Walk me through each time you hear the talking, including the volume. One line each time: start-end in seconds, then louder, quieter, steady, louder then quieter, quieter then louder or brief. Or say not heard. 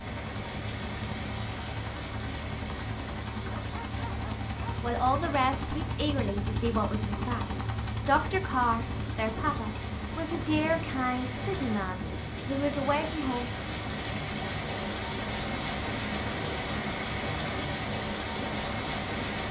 4.8-13.5 steady.